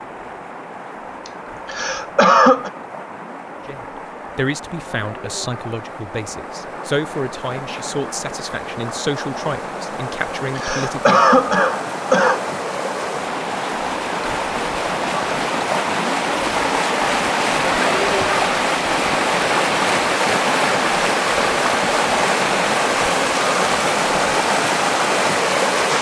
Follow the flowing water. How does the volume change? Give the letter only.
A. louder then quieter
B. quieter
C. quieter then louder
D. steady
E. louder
E.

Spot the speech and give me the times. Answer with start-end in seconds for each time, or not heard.
3.6-11.2.